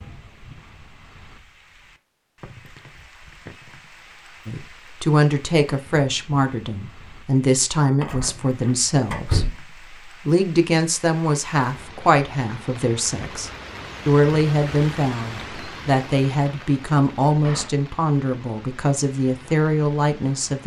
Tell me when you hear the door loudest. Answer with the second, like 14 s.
9 s.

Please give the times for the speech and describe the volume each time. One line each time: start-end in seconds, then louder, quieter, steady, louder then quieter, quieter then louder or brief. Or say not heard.
4.5-20.6 steady.